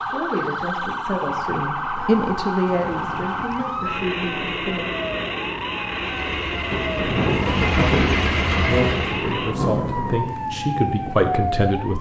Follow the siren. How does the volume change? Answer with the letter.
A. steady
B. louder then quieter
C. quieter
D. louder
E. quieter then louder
A.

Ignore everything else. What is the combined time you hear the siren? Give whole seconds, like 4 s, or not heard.
12 s.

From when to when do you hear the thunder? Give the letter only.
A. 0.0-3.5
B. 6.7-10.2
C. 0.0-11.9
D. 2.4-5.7
B.